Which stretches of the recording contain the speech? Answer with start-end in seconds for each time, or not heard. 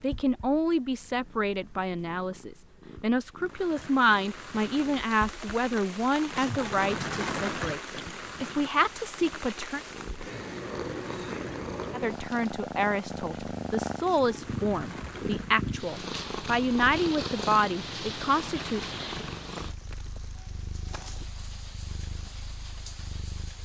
0.0-9.8, 11.9-18.9.